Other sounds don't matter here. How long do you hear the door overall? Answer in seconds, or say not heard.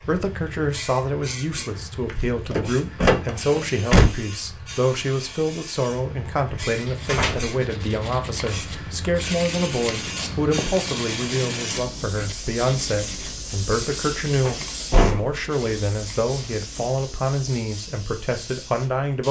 3 s.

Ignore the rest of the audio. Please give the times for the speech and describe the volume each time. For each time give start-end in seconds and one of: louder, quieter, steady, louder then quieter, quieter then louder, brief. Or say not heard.
0.0-19.2 steady.